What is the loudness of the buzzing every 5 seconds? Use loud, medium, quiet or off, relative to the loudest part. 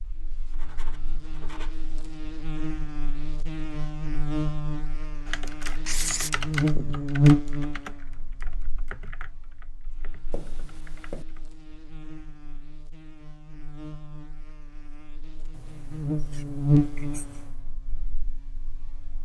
medium, loud, quiet, loud.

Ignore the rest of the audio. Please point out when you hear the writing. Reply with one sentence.
You can hear the writing from 0.2 to 1.9 s, from 5.8 to 6.3 s, from 10.3 to 11.2 s and from 15.5 to 17.6 s.